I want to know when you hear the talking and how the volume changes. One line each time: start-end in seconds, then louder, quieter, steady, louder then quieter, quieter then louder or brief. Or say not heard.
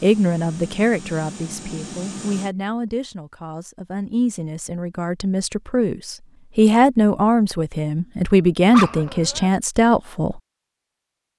0.0-10.4 louder.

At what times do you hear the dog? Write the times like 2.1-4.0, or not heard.
8.7-9.5.